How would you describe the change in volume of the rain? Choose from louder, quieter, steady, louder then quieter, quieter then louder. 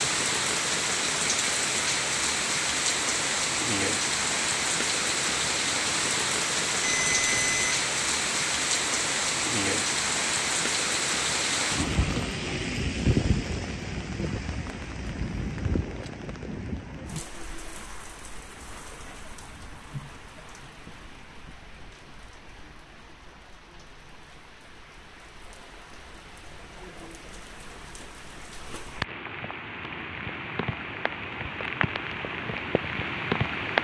quieter then louder.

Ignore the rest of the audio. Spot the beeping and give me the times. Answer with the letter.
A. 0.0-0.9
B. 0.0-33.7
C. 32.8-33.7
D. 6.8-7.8
D.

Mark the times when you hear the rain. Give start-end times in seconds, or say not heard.
0.0-33.7.